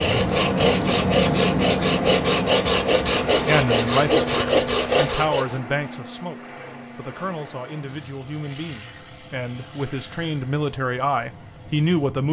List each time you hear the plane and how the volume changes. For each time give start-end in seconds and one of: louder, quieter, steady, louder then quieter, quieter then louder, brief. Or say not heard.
0.0-12.2 quieter.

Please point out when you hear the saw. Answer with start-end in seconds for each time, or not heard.
0.0-5.6.